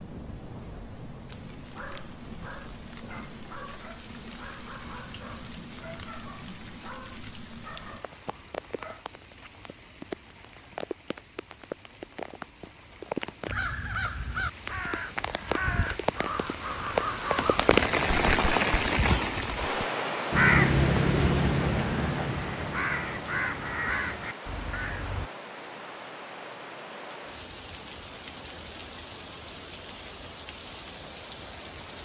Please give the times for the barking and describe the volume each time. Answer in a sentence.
The barking can be heard from 1.7 to 9.1 s, at a steady volume.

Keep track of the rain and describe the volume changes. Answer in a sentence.
The loudness of the rain goes up, then down.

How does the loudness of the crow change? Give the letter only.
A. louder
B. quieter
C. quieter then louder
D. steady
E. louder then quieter
E.